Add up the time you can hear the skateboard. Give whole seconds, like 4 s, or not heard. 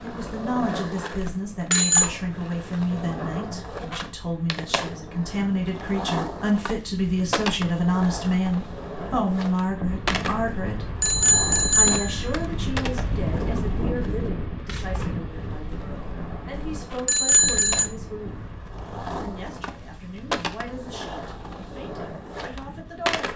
23 s.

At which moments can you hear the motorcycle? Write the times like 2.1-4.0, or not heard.
not heard.